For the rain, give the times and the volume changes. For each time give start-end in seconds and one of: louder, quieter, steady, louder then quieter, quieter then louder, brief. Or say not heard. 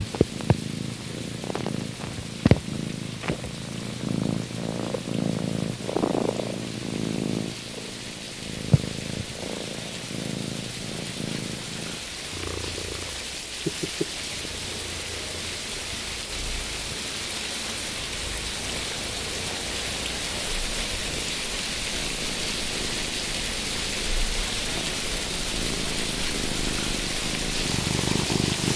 0.0-28.7 louder.